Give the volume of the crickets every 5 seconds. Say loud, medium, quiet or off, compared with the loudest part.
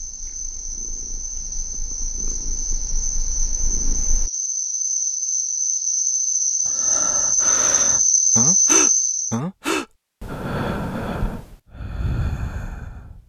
medium, loud, off.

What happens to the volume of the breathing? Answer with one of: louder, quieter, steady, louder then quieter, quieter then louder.
louder then quieter.